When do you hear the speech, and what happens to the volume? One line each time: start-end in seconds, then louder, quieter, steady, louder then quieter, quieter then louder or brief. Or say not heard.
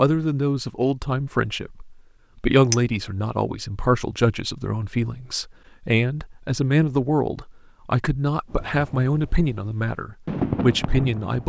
0.0-11.4 steady.